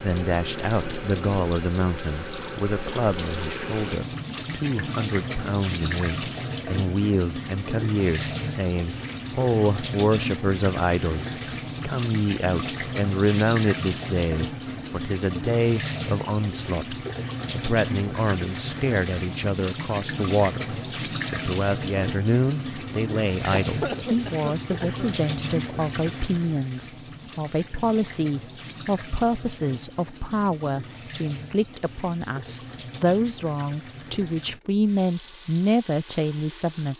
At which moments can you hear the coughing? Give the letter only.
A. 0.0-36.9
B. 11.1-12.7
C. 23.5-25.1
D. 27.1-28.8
C.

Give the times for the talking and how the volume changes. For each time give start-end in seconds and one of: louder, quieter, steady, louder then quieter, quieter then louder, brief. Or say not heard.
0.0-36.9 steady.